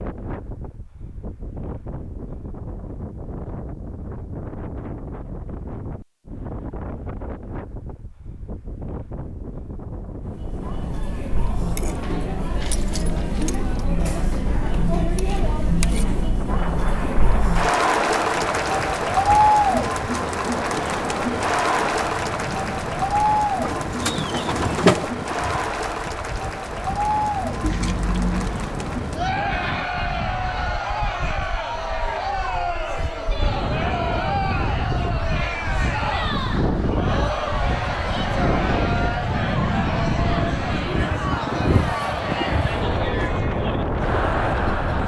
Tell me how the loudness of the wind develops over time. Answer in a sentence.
The loudness of the wind goes up.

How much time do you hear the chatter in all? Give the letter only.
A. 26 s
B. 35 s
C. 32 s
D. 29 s
B.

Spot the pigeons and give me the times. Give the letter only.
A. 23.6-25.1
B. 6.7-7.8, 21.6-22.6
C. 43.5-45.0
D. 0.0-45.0
A.